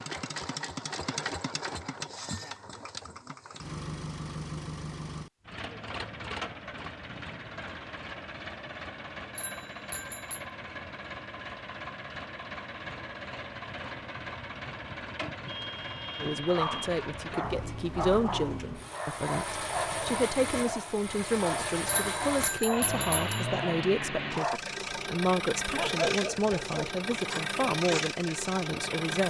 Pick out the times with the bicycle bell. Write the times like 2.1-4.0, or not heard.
9.3-10.4, 21.9-23.4.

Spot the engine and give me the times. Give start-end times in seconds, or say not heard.
0.0-29.2.